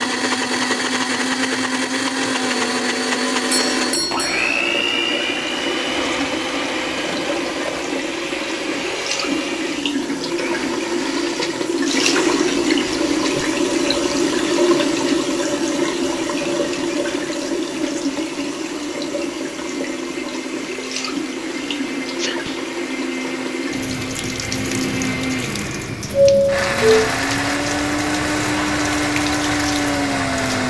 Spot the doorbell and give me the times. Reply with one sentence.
The doorbell can be heard from 3.5 to 4.6 s and from 26.1 to 27.1 s.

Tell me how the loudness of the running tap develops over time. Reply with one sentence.
The volume of the running tap goes up, then down.